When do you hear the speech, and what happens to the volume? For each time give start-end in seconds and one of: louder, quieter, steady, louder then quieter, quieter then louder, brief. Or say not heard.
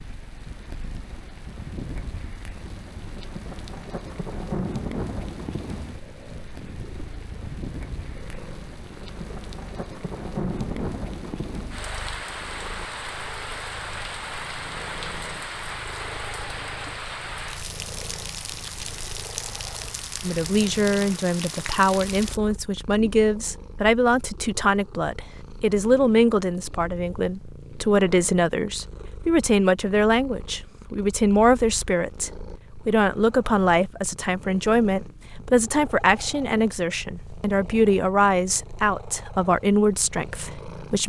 20.2-41.0 steady.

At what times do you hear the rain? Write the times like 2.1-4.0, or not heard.
0.0-22.4.